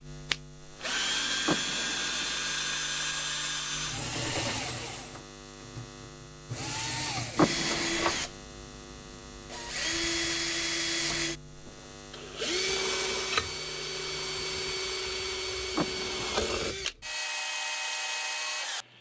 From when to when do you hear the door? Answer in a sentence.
The door can be heard from 1.4 to 2.4 s, from 7.3 to 8.2 s and from 15.8 to 16.4 s.